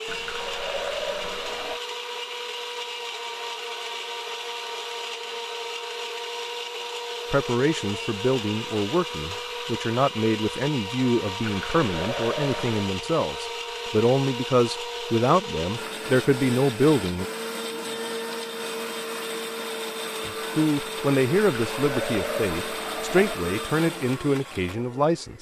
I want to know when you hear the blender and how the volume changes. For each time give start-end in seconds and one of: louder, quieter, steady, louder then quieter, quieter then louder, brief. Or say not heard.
0.0-25.3 steady.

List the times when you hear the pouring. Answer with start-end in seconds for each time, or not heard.
0.1-1.8, 11.4-12.9, 21.4-23.4.